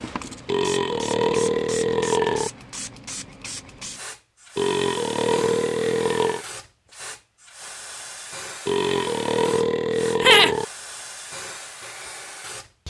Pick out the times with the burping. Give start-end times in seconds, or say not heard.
0.5-2.5, 4.5-6.5, 8.7-10.7.